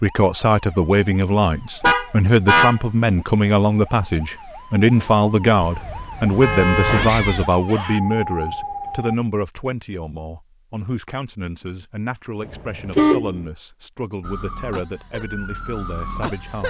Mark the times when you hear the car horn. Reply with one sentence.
You can hear the car horn from 1.8 to 2.8 s, from 5.6 to 7.2 s and from 12.5 to 13.4 s.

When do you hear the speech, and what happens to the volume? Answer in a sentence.
You can hear the speech from 0.0 to 16.6 s, getting quieter.